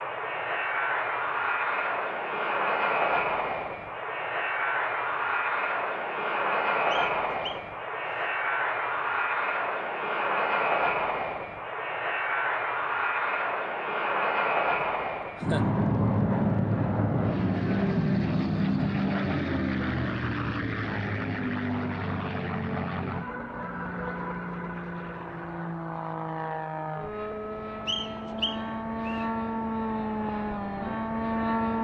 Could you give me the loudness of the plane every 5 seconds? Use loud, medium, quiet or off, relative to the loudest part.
loud, loud, loud, loud, medium, medium, loud.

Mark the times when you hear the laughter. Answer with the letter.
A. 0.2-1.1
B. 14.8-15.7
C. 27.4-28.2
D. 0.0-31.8
B.